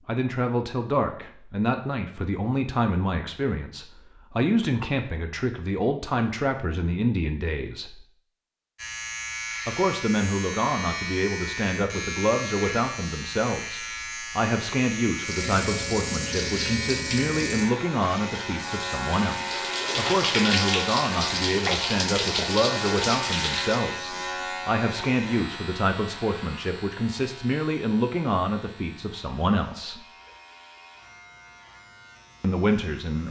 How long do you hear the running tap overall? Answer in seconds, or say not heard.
9 s.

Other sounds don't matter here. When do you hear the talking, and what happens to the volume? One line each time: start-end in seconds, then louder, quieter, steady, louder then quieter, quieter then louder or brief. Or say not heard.
0.1-8.1 steady
9.7-30.0 steady
32.4-33.2 brief.